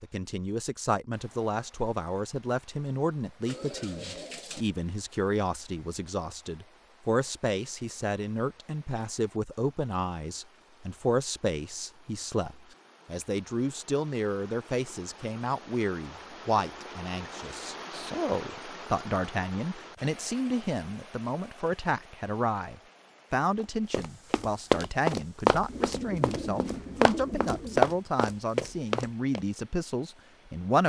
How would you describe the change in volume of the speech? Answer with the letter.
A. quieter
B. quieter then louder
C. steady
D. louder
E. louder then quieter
C.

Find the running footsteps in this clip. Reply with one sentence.
You can hear the running footsteps from 23.6 to 29.4 s.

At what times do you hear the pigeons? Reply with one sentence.
The pigeons can be heard from 3.5 to 4.7 s and from 25.6 to 27.9 s.